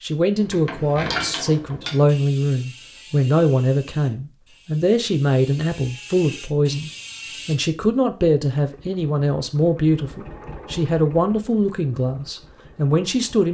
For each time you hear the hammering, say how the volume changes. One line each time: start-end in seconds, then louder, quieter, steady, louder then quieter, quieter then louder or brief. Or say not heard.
not heard.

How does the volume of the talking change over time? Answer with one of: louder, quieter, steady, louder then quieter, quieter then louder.
steady.